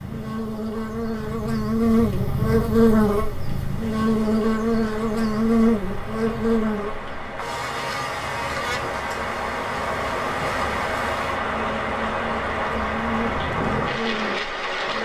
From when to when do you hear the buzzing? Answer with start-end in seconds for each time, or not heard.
0.0-15.0.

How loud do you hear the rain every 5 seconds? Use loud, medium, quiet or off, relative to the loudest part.
quiet, medium, loud.